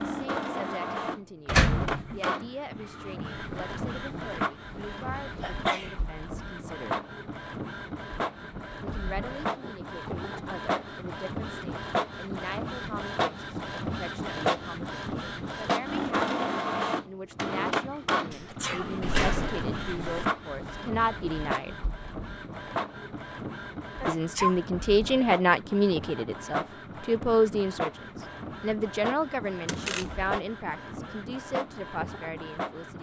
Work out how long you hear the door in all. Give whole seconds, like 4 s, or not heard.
3 s.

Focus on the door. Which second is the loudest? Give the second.
2 s.